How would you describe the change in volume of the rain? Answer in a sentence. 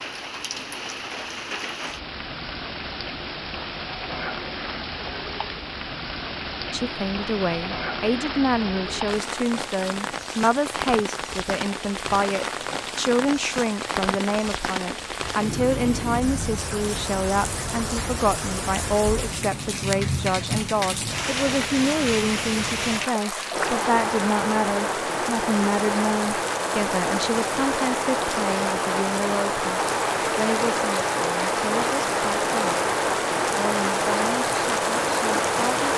The volume of the rain goes up.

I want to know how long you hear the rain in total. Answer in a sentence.
You can hear the rain for 36 seconds altogether.